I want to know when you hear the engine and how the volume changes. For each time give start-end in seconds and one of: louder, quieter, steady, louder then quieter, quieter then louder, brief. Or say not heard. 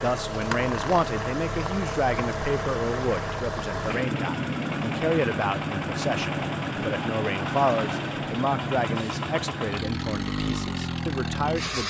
0.0-11.8 steady.